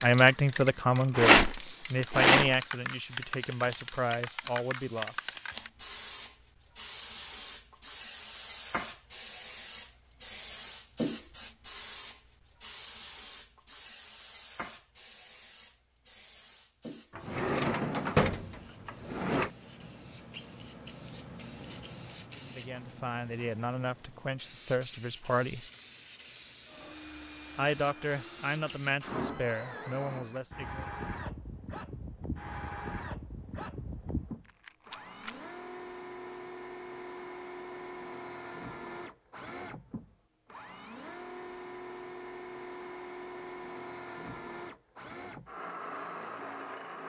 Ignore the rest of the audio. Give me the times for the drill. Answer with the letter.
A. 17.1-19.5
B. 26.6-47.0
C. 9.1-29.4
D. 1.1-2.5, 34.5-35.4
B.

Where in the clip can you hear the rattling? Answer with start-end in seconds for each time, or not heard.
1.1-2.5, 34.5-35.4.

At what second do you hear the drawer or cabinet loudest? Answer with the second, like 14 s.
18 s.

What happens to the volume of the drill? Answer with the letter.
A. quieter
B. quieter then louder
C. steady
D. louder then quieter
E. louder
C.